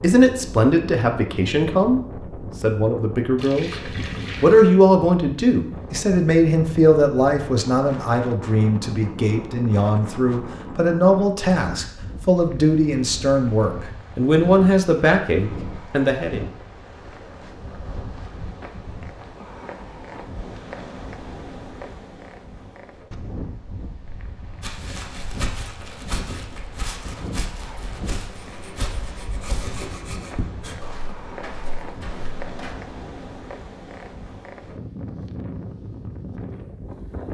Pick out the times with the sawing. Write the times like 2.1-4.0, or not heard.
28.4-30.8.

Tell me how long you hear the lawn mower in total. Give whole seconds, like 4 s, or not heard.
not heard.